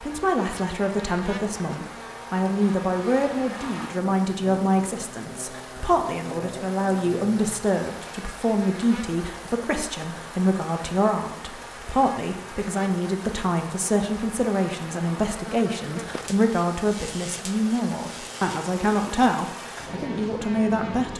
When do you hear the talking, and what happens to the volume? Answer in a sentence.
You can hear the talking from 0.0 to 21.1 s, at a steady volume.